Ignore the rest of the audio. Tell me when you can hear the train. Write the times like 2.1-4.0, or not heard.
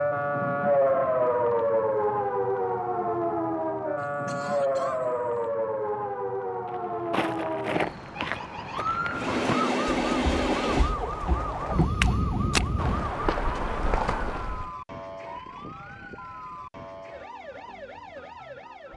9.1-13.2.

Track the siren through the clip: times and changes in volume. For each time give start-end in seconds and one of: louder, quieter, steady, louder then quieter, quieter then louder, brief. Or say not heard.
0.0-18.9 quieter.